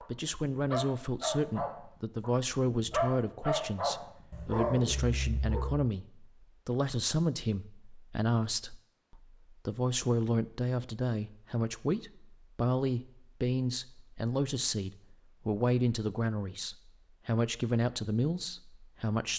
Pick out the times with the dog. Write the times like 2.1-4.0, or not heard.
0.0-5.8.